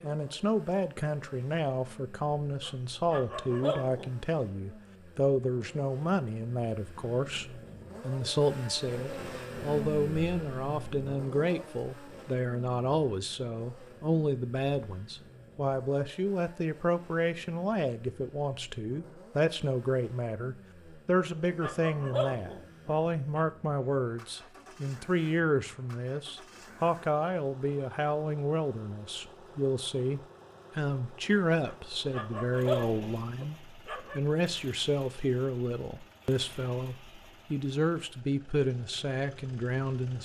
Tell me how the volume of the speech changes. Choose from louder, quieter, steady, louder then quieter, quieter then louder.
steady.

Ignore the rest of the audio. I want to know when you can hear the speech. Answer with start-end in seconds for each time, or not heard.
0.0-40.1.